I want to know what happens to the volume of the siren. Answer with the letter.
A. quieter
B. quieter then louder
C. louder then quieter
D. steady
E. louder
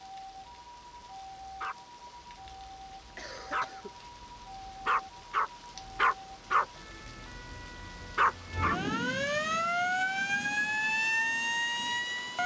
E.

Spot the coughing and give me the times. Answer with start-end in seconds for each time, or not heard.
3.1-4.0.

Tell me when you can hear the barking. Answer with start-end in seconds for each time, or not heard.
0.2-8.8.